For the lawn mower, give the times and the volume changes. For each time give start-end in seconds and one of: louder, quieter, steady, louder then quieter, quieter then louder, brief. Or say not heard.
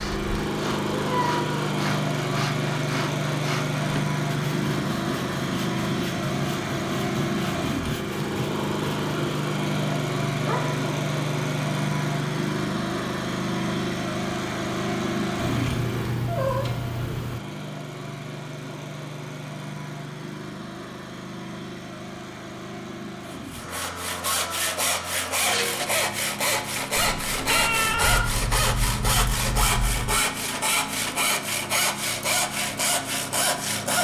0.0-33.9 quieter.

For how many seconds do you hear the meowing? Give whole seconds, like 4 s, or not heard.
4 s.